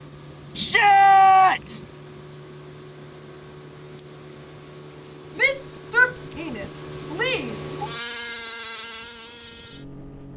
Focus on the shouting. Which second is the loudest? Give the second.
1 s.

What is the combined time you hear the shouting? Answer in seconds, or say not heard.
4 s.